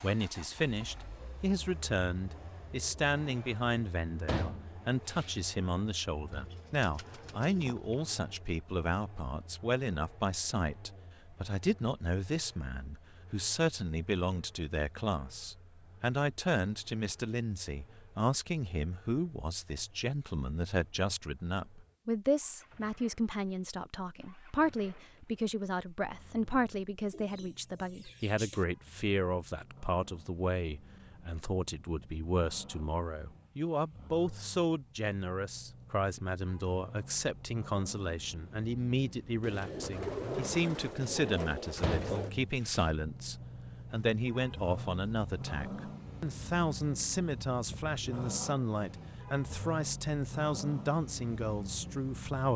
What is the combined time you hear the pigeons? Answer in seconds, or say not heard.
6 s.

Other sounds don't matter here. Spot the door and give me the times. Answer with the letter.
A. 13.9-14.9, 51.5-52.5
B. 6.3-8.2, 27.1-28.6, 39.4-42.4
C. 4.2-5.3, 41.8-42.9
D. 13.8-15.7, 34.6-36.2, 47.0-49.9
C.